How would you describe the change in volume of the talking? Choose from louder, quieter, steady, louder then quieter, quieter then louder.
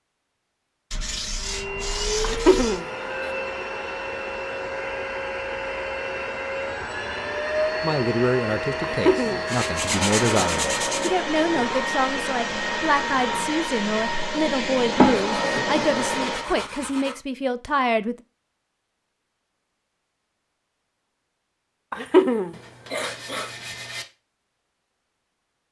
steady.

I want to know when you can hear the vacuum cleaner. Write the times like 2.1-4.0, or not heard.
1.4-16.5.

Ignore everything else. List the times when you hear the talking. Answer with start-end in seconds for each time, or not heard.
7.8-18.1.